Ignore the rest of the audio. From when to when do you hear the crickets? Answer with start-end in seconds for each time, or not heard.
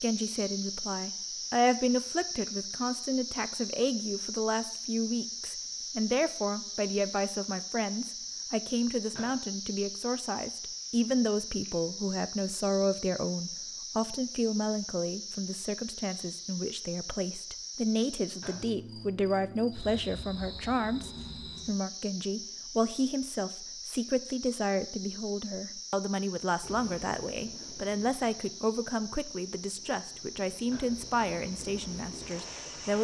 0.0-32.9.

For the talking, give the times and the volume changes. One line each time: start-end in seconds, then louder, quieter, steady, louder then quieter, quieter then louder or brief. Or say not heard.
0.0-32.9 steady.